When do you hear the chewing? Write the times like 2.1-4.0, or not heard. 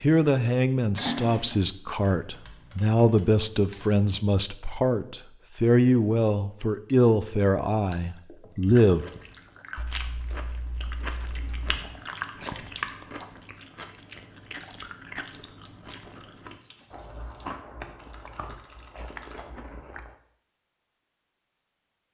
8.6-20.1.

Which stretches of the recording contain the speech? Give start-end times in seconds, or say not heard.
0.0-9.1.